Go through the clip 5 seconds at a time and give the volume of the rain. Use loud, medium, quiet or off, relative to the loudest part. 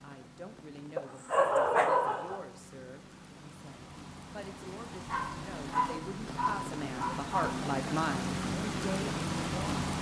quiet, loud.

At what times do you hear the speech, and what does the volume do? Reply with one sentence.
You can hear the speech from 0.0 to 9.7 s, getting louder.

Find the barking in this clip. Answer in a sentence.
The barking can be heard from 0.9 to 2.4 s and from 5.0 to 7.6 s.